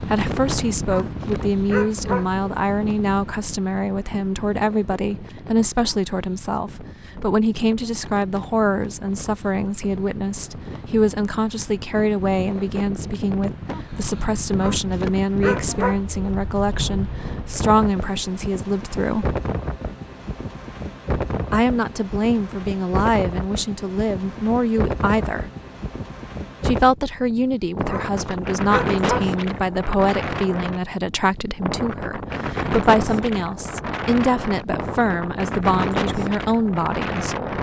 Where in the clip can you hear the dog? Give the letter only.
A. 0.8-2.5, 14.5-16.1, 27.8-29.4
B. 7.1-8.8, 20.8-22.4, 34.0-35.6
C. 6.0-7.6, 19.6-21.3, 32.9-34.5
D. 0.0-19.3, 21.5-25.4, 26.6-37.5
A.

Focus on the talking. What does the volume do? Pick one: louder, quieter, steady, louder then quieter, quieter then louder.
steady.